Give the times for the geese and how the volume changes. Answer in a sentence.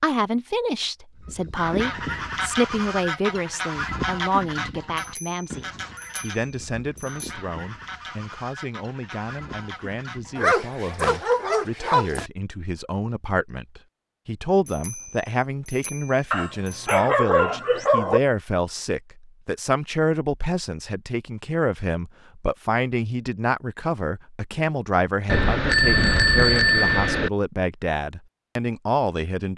The geese can be heard from 1.2 to 11.2 s, getting quieter.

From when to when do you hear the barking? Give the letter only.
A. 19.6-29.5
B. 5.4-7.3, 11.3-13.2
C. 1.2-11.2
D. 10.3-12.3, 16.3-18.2
D.